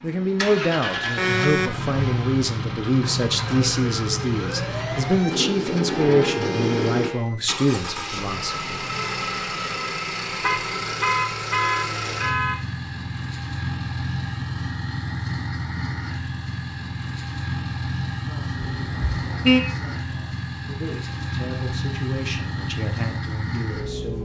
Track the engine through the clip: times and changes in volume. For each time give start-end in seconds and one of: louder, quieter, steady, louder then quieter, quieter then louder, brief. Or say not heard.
0.0-24.1 steady.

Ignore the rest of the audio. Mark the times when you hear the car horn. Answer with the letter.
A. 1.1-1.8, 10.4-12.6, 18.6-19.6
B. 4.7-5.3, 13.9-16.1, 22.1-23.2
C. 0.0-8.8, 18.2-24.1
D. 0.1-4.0
A.